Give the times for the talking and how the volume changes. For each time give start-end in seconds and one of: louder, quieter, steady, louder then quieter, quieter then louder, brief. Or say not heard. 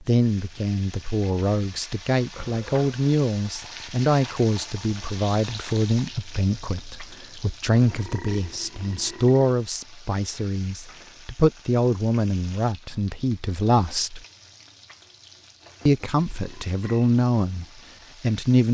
0.0-14.2 steady
15.8-18.6 brief.